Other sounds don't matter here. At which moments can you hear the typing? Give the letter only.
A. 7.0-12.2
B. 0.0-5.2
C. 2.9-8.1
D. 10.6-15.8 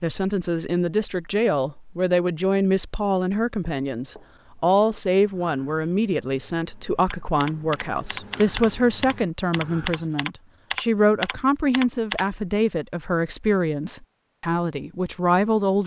A.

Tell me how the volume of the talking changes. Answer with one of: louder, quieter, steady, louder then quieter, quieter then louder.
steady.